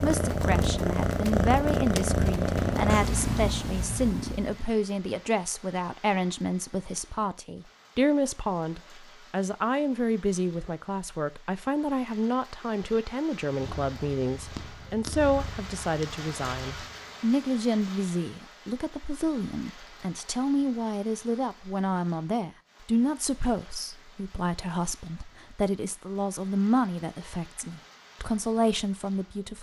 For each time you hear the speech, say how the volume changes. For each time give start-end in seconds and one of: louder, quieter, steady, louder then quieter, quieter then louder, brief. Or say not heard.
0.0-29.5 steady.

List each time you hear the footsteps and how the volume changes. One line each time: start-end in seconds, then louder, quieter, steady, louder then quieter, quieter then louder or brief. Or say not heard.
not heard.